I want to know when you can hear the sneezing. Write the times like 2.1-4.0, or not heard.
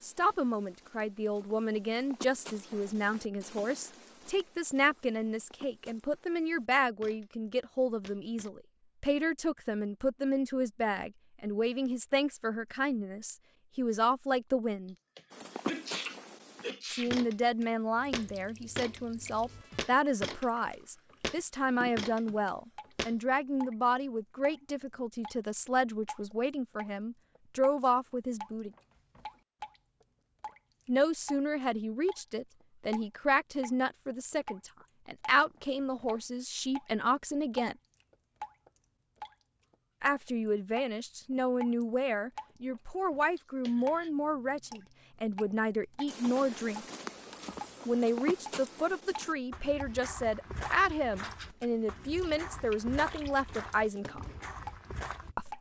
15.2-17.1, 43.4-44.1.